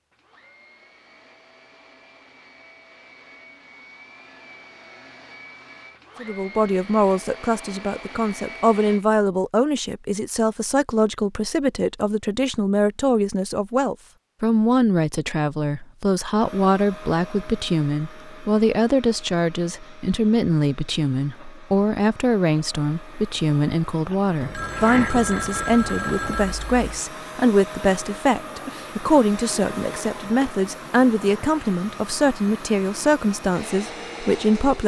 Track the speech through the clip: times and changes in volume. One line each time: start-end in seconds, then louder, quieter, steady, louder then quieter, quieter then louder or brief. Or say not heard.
6.2-34.8 steady.